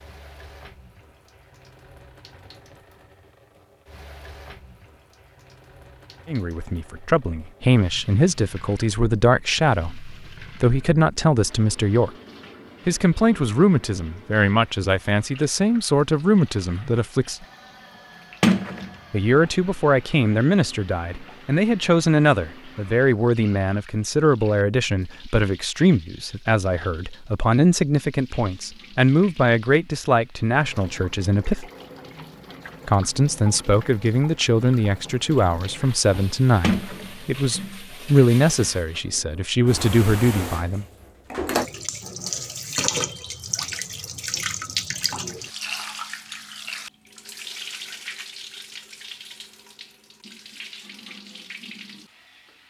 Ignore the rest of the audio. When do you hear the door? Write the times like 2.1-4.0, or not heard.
18.4-18.9, 36.6-37.8.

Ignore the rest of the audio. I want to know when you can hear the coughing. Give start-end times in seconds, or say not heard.
not heard.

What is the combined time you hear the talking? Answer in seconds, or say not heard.
31 s.